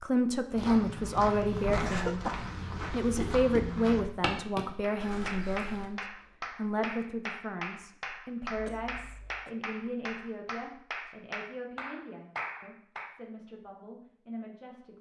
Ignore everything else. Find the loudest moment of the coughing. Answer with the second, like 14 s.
2 s.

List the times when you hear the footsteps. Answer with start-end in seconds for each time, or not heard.
0.5-5.8.